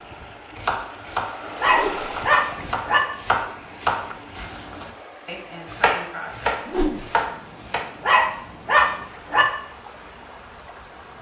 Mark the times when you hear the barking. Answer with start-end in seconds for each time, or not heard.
1.6-3.0, 8.0-9.4.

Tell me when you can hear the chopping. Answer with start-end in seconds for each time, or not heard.
0.6-7.8.